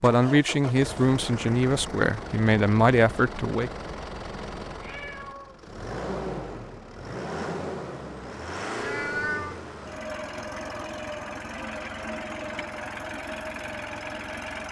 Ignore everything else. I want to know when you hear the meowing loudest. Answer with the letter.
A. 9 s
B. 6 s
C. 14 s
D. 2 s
A.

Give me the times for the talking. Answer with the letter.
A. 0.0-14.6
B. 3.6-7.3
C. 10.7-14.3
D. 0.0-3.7
D.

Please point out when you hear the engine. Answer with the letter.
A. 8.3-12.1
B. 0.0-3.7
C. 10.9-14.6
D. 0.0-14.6
D.